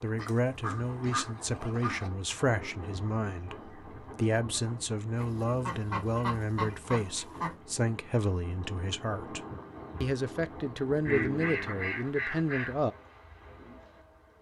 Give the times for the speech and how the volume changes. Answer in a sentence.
The speech can be heard from 0.0 to 9.4 s, at a steady volume; and briefly from 10.0 to 12.9 s.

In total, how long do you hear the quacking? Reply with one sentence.
You can hear the quacking for 6 seconds altogether.